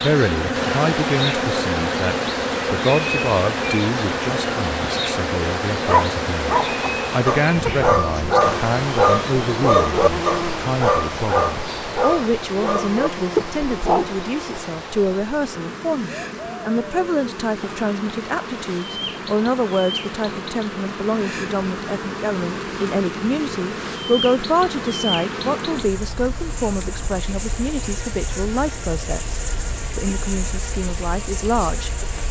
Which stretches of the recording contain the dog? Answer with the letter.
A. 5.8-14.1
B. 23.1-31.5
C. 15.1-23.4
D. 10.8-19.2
A.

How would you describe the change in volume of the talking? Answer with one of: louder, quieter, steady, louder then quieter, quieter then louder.
steady.